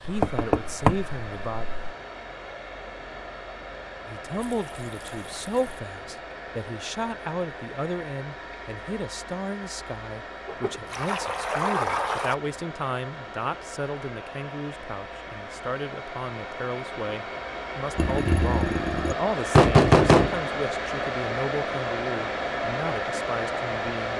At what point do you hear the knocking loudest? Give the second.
20 s.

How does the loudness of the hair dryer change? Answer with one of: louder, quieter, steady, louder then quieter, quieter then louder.
louder.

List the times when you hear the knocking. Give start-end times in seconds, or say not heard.
0.1-1.9, 19.6-20.4.